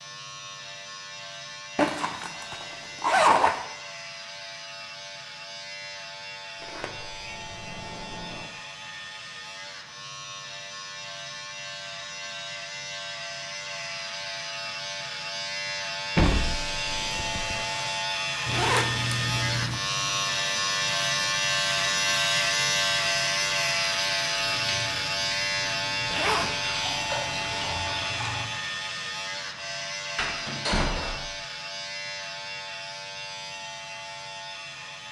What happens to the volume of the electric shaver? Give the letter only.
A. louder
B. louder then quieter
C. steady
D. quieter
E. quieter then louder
B.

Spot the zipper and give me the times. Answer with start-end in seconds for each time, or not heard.
1.8-3.6, 18.4-19.8, 26.1-26.6.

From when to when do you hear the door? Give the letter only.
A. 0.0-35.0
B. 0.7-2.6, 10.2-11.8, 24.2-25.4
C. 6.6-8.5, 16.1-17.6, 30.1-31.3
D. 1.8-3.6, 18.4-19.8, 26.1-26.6
C.